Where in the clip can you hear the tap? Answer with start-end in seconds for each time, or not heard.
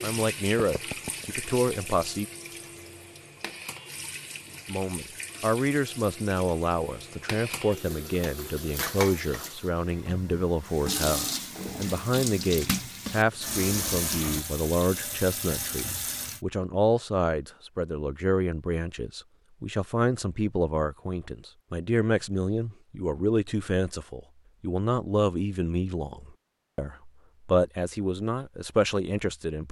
0.0-16.4.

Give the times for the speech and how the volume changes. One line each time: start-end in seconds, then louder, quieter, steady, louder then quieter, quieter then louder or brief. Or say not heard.
0.0-2.2 brief
4.7-29.6 steady.